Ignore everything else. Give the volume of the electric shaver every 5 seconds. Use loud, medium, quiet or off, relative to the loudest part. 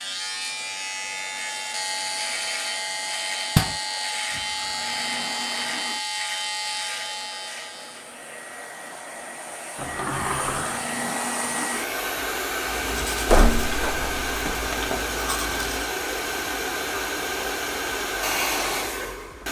loud, loud, off, off.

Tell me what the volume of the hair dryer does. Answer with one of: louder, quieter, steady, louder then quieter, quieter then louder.
louder.